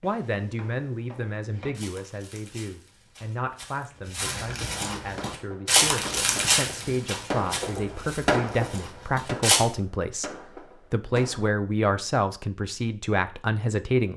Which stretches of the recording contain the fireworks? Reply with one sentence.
You can hear the fireworks from 5.2 to 11.5 s.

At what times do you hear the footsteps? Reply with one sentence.
The footsteps can be heard from 0.0 to 9.6 s.